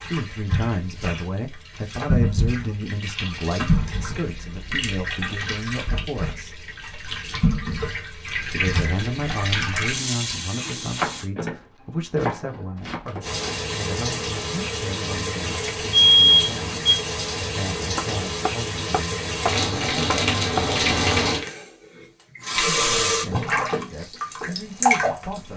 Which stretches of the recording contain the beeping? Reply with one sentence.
The beeping can be heard from 15.9 to 17.0 s.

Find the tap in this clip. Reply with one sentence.
You can hear the tap from 0.0 to 11.3 s and from 13.2 to 25.5 s.